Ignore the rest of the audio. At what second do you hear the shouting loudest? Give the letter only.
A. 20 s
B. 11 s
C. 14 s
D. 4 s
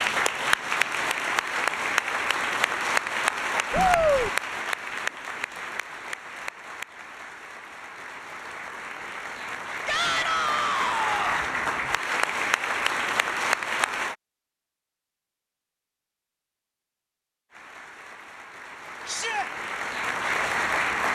D.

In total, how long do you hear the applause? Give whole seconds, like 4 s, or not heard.
18 s.